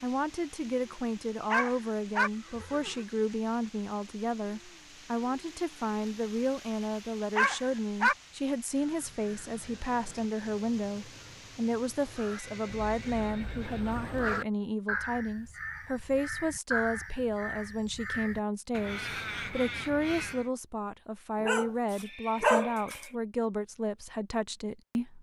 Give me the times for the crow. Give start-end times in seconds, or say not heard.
8.7-20.5.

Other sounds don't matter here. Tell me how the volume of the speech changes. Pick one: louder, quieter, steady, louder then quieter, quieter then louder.
steady.